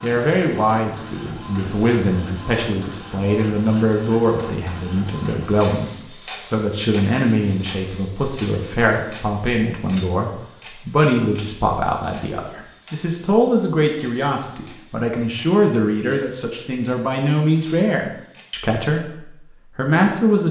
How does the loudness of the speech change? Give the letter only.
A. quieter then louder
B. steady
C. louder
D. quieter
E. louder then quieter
B.